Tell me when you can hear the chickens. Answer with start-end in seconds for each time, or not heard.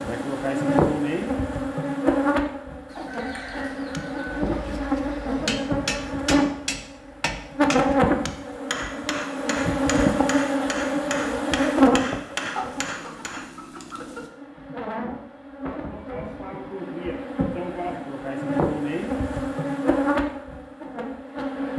2.9-4.6, 12.5-14.3.